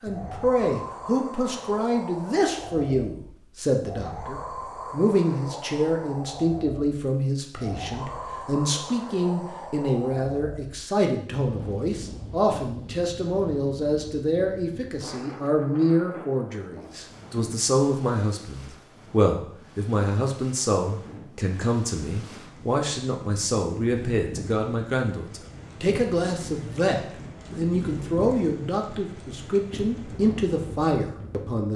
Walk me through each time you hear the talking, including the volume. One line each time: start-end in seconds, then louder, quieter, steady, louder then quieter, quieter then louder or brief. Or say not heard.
0.0-31.7 steady.